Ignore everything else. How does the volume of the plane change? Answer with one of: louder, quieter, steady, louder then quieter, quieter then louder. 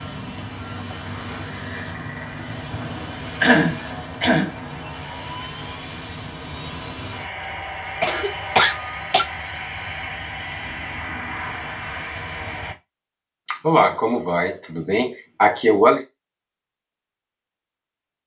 steady.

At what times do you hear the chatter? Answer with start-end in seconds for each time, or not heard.
not heard.